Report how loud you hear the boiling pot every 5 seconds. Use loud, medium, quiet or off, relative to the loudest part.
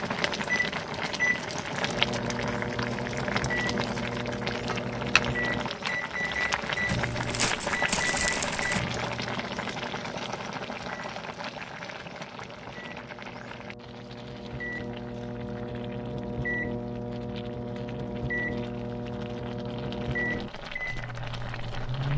loud, loud, medium, quiet, medium.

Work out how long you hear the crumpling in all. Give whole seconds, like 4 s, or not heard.
2 s.